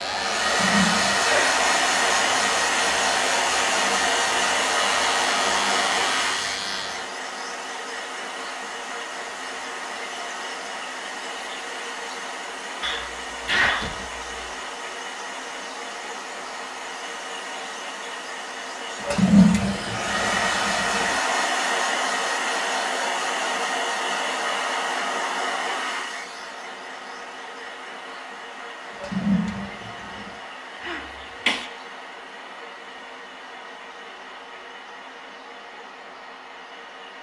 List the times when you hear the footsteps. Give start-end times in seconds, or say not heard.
not heard.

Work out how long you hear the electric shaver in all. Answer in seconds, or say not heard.
7 s.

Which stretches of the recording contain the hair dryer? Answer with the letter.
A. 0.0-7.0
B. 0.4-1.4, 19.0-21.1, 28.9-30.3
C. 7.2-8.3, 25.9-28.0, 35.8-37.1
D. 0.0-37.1
D.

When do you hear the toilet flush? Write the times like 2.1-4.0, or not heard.
0.4-1.4, 19.0-21.1, 28.9-30.3.